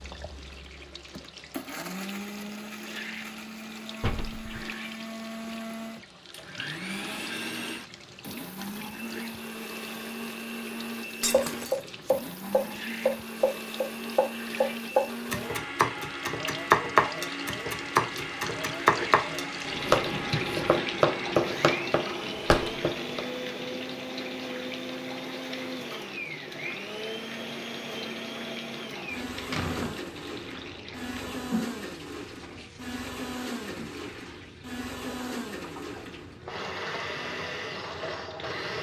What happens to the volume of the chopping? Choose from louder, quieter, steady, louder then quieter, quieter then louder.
steady.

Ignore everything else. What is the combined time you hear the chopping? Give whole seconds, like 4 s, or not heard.
12 s.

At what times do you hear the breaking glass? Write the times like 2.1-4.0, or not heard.
11.2-11.9.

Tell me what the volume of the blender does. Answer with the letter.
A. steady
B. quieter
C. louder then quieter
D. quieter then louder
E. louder
A.